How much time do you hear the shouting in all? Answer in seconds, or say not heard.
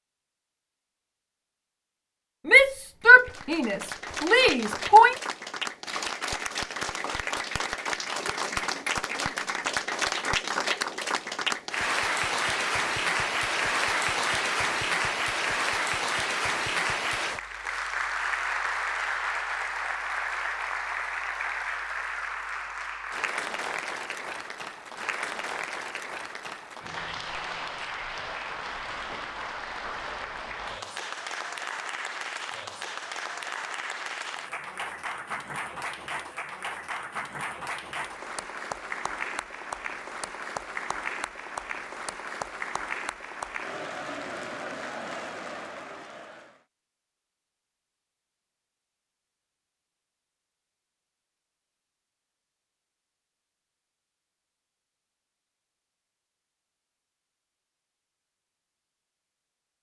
3 s.